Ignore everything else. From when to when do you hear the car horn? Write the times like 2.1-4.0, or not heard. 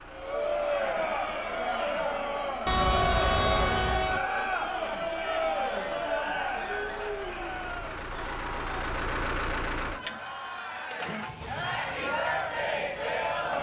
2.6-4.2.